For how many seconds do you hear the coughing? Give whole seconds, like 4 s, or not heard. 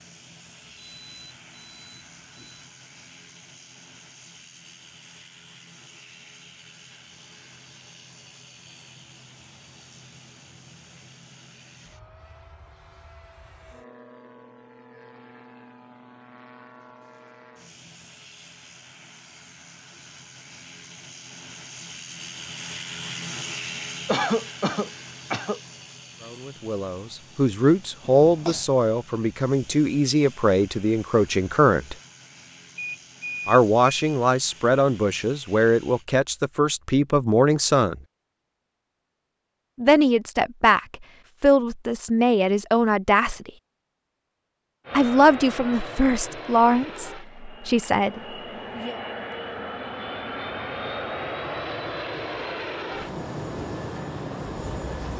2 s.